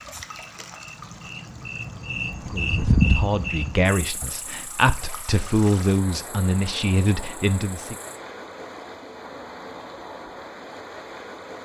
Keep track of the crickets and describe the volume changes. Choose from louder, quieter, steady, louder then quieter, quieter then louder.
louder then quieter.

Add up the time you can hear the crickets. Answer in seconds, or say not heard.
8 s.